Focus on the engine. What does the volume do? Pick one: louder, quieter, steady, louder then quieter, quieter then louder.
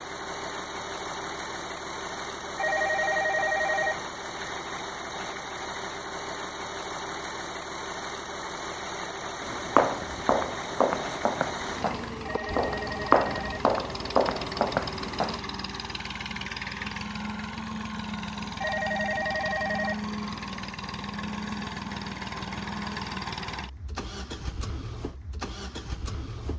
steady.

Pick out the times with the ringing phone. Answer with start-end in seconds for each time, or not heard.
2.5-4.0, 12.2-13.7, 18.6-20.1.